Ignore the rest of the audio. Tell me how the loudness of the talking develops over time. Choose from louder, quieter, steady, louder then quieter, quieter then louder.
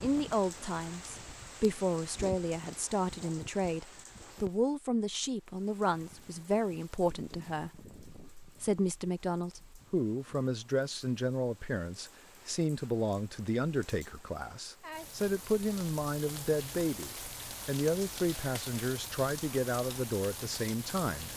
steady.